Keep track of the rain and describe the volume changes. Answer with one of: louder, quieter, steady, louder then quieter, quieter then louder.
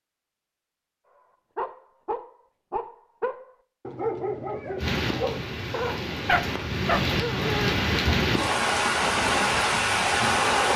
louder.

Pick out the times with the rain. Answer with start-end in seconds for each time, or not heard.
4.8-10.7.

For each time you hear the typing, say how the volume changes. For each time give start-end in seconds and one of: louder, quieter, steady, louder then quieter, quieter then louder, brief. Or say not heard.
not heard.